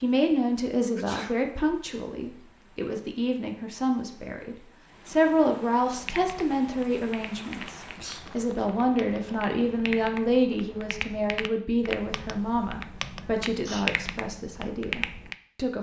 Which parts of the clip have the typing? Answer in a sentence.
You can hear the typing from 6.0 to 15.3 s.